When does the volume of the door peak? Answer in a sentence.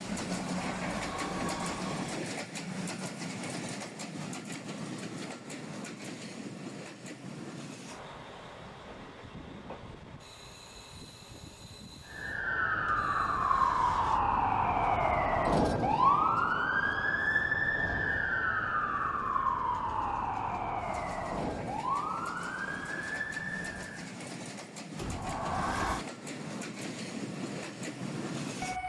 The volume of the door peaks at 26 seconds.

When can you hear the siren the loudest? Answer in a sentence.
The volume of the siren peaks at 16 seconds.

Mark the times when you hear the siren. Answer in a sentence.
The siren can be heard from 12.1 to 24.1 s.